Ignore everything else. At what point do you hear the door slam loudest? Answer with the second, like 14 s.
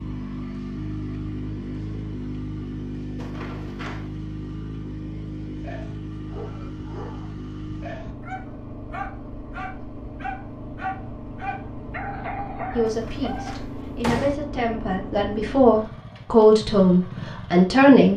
14 s.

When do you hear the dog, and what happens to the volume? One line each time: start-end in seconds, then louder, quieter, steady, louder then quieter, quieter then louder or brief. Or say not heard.
5.5-13.6 louder.